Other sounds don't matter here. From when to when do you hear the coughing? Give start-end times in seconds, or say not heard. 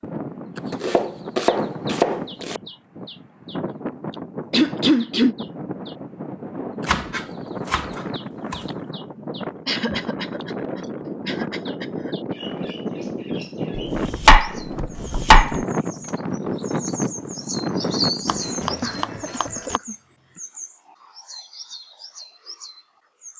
4.5-5.3, 9.7-12.2, 18.8-20.4.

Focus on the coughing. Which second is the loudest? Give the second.
5 s.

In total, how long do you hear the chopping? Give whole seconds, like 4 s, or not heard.
7 s.